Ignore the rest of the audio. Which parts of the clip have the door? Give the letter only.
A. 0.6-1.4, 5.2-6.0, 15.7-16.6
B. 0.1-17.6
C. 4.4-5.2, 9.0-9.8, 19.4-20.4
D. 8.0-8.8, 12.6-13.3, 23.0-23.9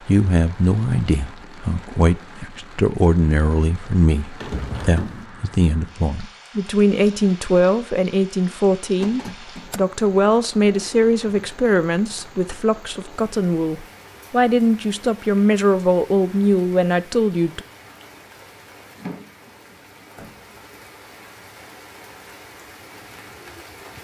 C.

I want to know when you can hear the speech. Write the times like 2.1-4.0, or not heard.
0.1-17.6.